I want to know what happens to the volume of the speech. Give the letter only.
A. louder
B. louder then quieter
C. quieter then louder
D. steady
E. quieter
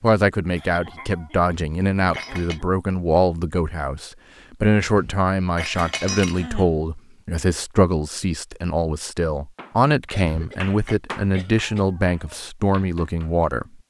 D.